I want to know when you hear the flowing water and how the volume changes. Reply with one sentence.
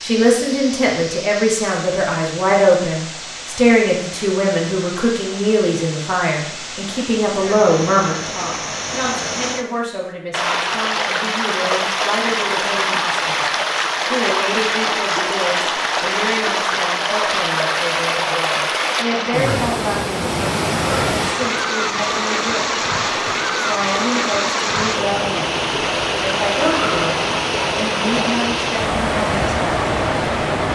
You can hear the flowing water from 0.0 to 30.7 s, getting louder.